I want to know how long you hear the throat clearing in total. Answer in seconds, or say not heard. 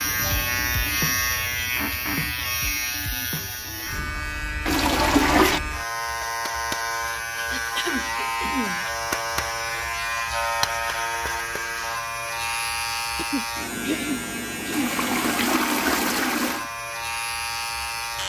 4 s.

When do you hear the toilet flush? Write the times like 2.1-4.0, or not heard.
4.7-5.6, 14.7-16.7.